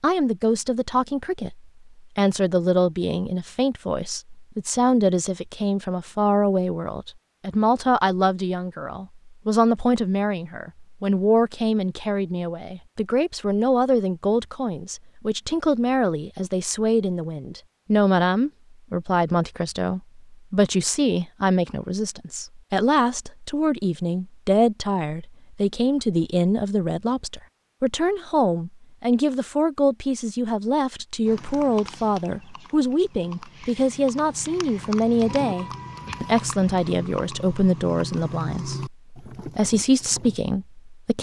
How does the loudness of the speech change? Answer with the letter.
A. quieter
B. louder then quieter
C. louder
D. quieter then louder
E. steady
E.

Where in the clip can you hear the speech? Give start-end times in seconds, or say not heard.
0.0-41.1.